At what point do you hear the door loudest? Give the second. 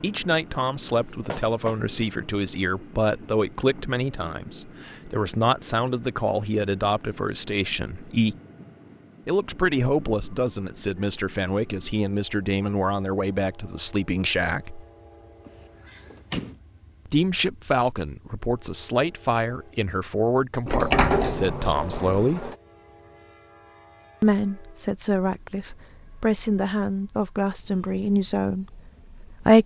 21 s.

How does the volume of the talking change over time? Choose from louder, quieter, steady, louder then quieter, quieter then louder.
steady.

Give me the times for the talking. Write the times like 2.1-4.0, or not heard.
0.0-8.3, 9.2-14.8, 17.1-22.5, 24.2-29.6.